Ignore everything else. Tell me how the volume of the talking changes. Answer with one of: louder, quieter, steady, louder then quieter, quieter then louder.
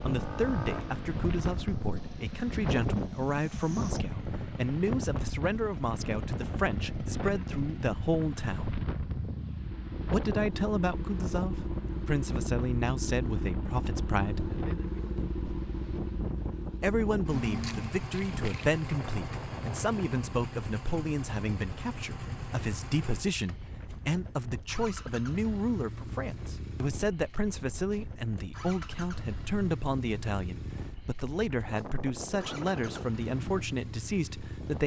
steady.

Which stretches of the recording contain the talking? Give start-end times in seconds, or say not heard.
0.0-8.8, 10.1-14.6, 16.8-34.8.